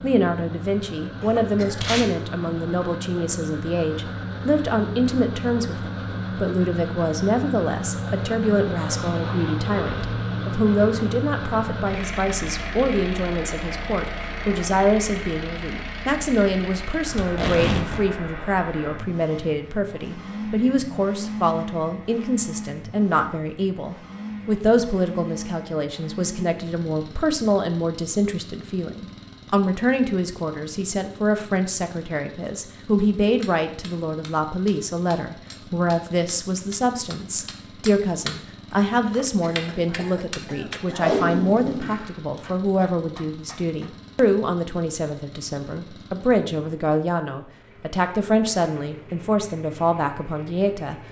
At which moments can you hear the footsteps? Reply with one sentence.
The footsteps can't be heard in this clip.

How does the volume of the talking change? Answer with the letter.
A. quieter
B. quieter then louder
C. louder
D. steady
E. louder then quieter
D.